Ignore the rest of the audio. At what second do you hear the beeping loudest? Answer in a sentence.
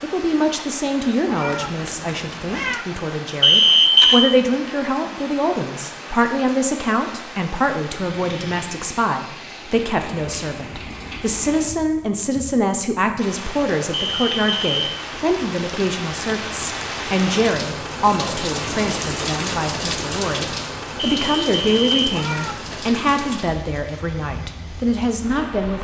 The volume of the beeping peaks at 4 seconds.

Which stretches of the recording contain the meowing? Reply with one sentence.
The meowing can be heard from 1.2 to 2.9 s and from 22.1 to 22.9 s.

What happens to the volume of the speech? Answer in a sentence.
The volume of the speech stays about the same.